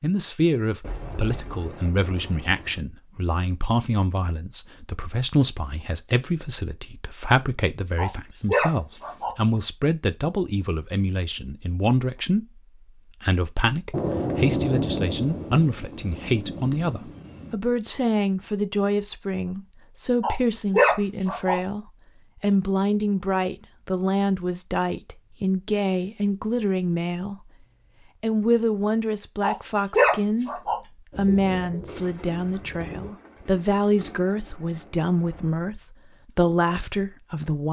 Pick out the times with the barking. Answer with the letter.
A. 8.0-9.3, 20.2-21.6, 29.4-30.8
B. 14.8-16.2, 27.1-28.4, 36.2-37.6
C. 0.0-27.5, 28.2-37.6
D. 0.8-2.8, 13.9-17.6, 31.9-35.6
A.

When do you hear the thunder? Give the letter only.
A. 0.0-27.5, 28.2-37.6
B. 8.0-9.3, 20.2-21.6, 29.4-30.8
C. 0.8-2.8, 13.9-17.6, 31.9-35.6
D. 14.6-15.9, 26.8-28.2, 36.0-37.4
C.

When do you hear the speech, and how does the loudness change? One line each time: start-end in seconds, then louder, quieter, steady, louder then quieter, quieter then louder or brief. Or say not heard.
0.0-27.5 steady
28.2-37.6 steady.